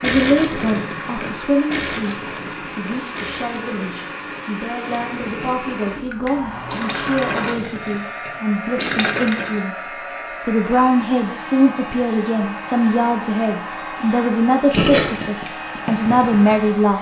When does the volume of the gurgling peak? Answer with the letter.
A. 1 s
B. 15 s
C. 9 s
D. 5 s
B.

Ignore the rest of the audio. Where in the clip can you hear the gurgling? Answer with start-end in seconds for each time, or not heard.
0.0-9.6, 14.7-16.7.